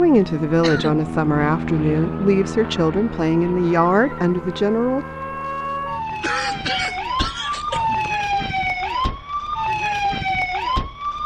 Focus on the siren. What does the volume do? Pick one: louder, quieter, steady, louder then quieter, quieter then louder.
louder.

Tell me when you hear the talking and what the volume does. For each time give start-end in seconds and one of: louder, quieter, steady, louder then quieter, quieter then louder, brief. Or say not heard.
0.0-5.0 steady.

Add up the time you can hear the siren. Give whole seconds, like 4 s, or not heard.
11 s.